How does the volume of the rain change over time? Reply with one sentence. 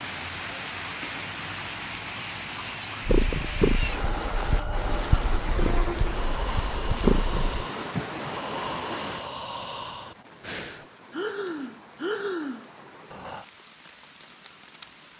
The loudness of the rain goes down.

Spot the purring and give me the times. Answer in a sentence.
You can hear the purring from 3.0 to 7.7 s.